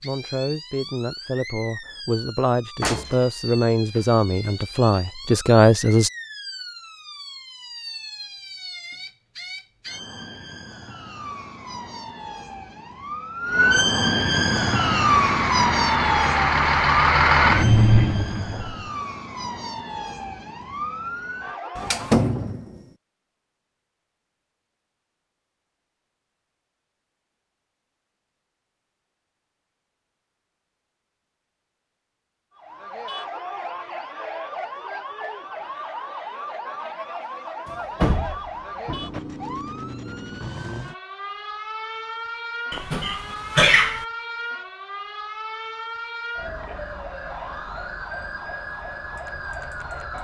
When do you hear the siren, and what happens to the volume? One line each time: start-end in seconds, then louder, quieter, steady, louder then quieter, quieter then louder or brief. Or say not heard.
0.0-22.4 louder then quieter
32.5-50.1 steady.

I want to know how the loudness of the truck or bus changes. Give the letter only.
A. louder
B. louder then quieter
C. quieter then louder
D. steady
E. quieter
A.